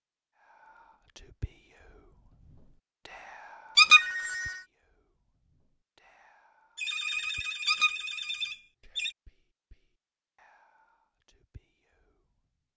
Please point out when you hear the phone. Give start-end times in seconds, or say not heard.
3.9-4.7, 6.8-9.2.